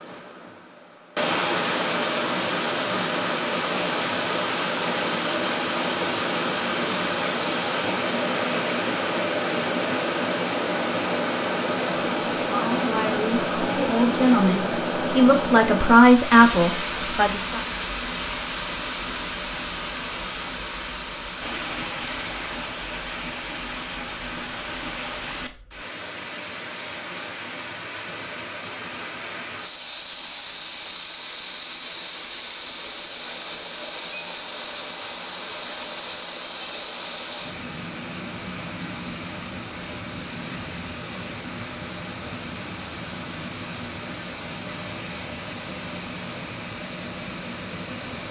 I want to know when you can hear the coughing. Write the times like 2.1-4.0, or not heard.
not heard.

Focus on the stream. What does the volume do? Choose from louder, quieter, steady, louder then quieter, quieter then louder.
quieter.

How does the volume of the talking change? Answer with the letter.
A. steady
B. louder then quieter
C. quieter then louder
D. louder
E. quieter
D.